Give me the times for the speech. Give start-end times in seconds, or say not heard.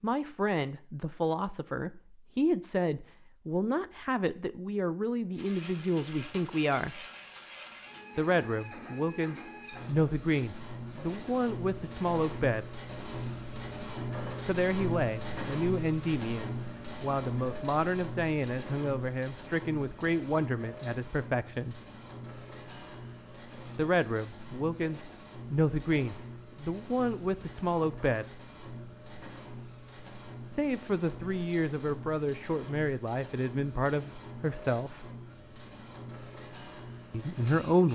0.0-7.0, 8.2-12.8, 14.4-21.8, 23.8-28.4, 30.5-35.1, 37.1-37.8.